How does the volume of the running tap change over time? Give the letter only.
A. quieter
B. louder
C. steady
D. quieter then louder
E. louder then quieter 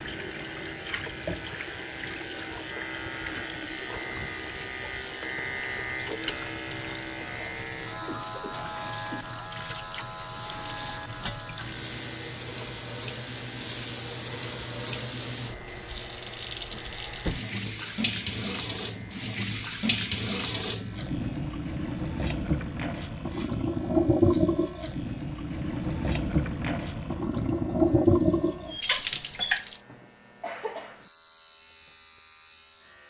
B.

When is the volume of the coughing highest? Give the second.
31 s.